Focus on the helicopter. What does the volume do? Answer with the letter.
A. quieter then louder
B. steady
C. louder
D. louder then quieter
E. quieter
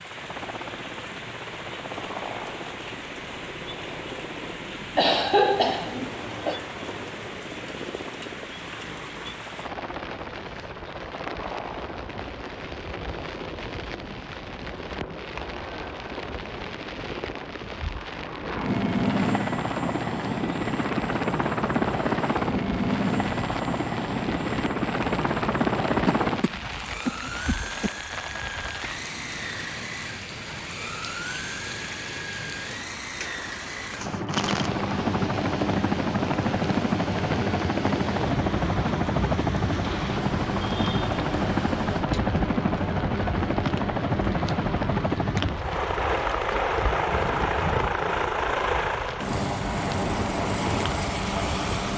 C.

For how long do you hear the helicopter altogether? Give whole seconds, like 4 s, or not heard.
52 s.